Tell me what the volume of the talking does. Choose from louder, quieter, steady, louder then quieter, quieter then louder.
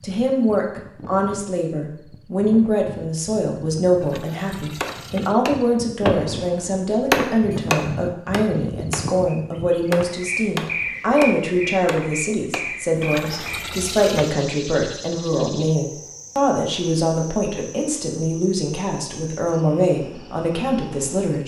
steady.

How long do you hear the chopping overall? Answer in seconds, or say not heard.
8 s.